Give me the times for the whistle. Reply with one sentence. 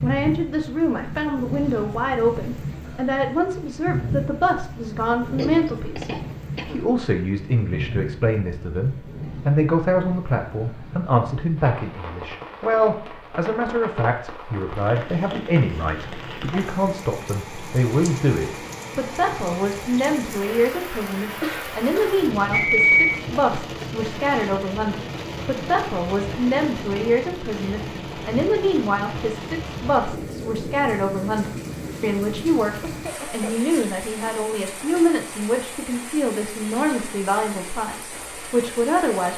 You can hear the whistle from 22.5 to 23.1 s.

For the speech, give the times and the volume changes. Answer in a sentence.
You can hear the speech from 0.0 to 39.3 s, at a steady volume.